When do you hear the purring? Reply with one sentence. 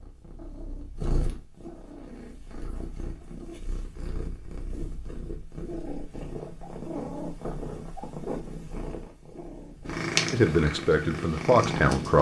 The purring can be heard from 0.0 to 12.1 s.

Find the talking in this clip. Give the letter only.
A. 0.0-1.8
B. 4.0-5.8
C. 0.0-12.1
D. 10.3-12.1
D.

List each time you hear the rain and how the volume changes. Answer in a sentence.
You can't hear the rain here.